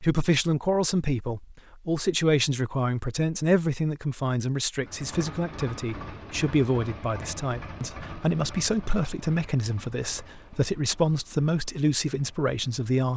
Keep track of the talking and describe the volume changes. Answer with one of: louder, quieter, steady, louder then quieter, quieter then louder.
steady.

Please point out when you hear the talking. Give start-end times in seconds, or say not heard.
0.0-13.1.